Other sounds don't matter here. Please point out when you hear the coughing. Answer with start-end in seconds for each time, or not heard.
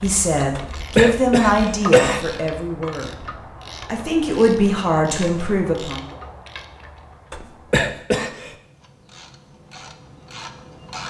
0.6-2.2, 7.3-8.6.